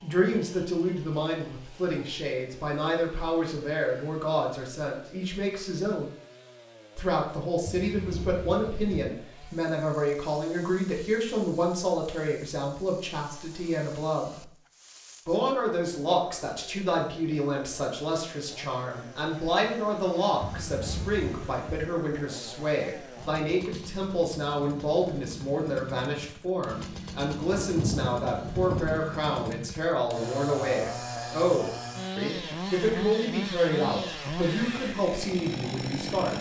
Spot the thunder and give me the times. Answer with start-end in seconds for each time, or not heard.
7.6-9.0, 20.4-21.9, 27.5-29.0.